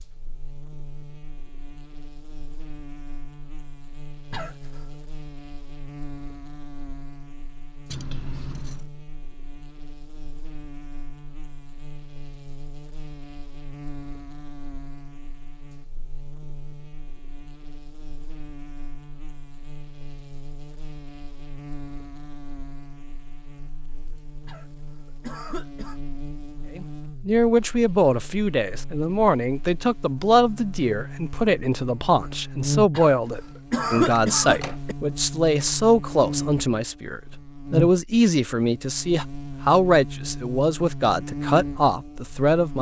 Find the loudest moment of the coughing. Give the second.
34 s.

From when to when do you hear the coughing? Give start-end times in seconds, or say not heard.
4.3-5.0, 24.4-25.9, 32.9-35.0.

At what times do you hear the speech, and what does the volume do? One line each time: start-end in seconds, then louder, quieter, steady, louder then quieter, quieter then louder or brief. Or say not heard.
26.7-42.7 steady.